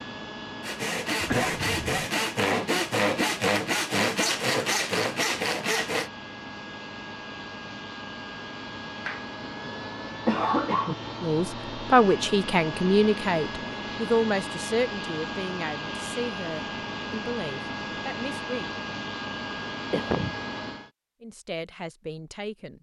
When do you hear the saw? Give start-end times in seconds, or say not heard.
0.6-6.1.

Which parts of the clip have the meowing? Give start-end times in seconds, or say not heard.
not heard.